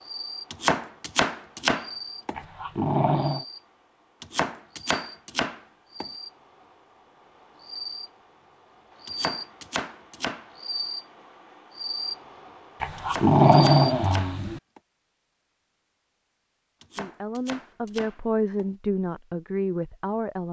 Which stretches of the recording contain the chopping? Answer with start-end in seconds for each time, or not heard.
0.5-2.4, 4.2-6.1, 9.1-10.4, 12.9-14.8, 16.8-18.6.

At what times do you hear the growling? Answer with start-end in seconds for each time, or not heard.
2.4-3.5, 12.8-14.6.